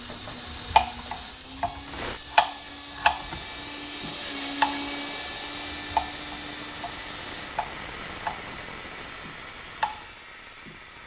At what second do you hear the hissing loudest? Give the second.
8 s.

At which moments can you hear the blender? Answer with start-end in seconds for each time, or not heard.
0.0-7.5.